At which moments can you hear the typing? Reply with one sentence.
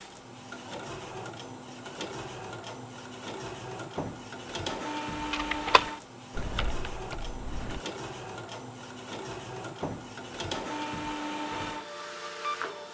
The typing can be heard from 5.3 to 7.8 s.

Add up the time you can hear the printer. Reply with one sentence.
The printer can be heard for 13 seconds in total.